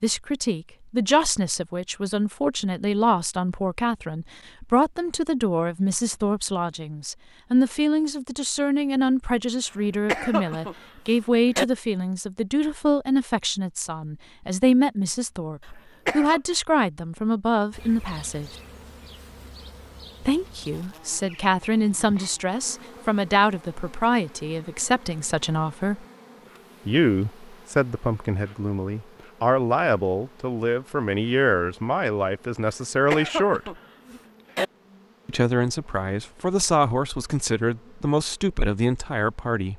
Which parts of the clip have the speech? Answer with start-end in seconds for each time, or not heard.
0.0-18.6, 20.2-26.1, 26.9-33.8, 35.2-39.7.